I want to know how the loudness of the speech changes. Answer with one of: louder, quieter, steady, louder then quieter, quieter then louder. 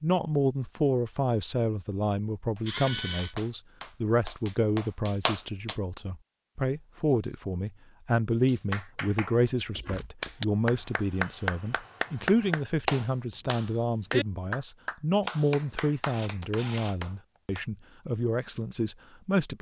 steady.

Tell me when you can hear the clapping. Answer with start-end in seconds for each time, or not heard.
2.5-5.8, 8.4-17.6.